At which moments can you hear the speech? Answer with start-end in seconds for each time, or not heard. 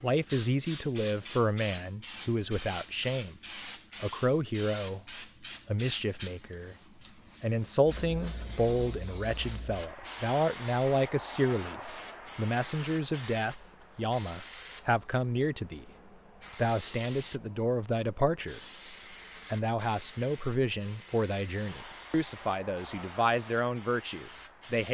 0.0-3.4, 4.0-5.0, 5.7-6.8, 7.4-15.9, 16.6-18.6, 19.5-24.8.